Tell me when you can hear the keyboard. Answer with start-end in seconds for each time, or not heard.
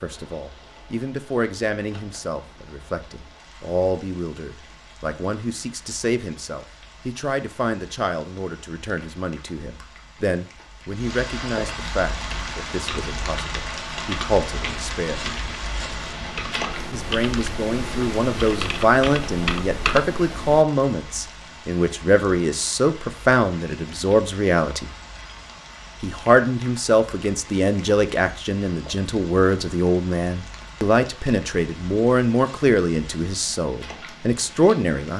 12.2-20.6.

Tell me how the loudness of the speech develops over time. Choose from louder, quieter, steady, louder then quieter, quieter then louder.
louder.